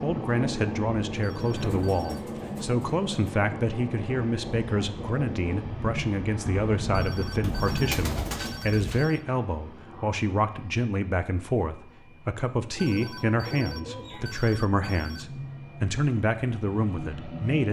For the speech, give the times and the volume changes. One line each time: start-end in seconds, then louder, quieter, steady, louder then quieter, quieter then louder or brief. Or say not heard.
0.0-17.6 steady.